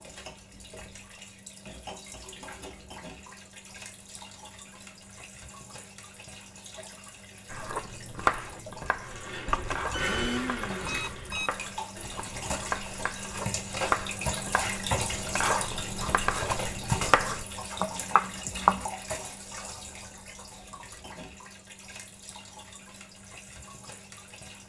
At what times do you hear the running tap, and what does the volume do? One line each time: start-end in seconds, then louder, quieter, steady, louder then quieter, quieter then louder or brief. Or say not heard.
0.0-24.6 louder then quieter.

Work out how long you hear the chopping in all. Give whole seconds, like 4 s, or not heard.
11 s.